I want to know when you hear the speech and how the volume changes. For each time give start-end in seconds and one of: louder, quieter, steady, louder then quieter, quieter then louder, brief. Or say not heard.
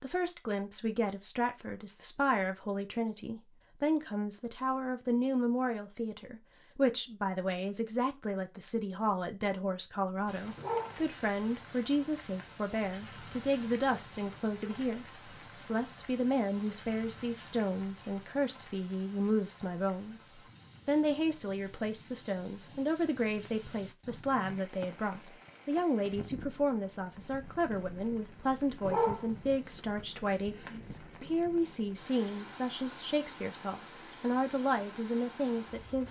0.0-36.0 steady.